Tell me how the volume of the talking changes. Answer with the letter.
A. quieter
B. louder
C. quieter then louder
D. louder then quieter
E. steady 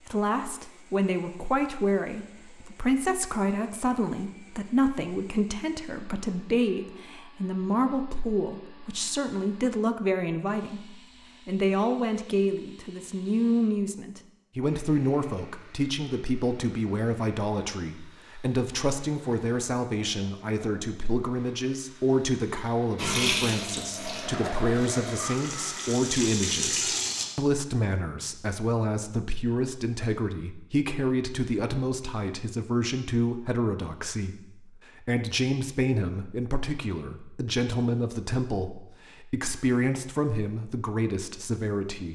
E.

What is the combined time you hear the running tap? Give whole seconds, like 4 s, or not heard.
4 s.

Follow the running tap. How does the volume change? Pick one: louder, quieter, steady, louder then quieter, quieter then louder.
quieter then louder.